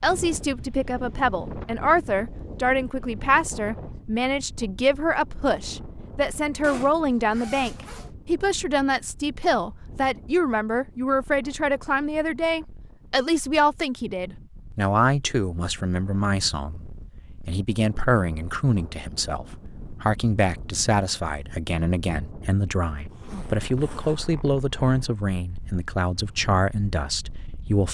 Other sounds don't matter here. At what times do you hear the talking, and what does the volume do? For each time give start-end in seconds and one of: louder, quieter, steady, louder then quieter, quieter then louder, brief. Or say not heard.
0.0-27.9 steady.